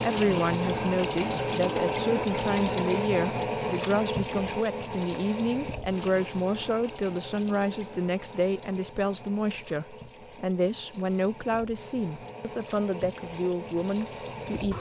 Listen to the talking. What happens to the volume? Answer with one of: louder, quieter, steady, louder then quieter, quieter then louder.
steady.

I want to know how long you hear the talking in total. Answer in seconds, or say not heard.
15 s.